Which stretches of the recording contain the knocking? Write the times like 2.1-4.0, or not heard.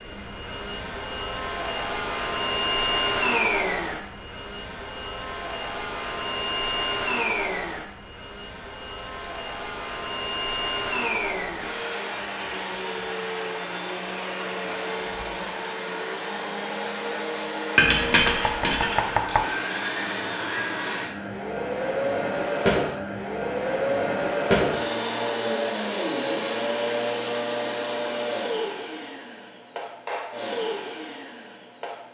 18.2-19.4.